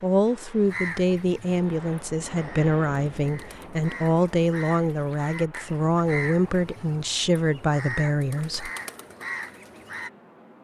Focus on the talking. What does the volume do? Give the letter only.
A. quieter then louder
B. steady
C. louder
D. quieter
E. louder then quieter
B.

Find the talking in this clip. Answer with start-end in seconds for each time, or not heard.
0.0-8.7.